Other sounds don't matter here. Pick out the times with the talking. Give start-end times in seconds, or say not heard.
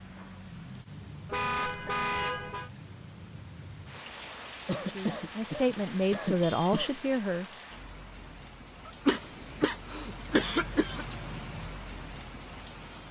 4.8-7.5.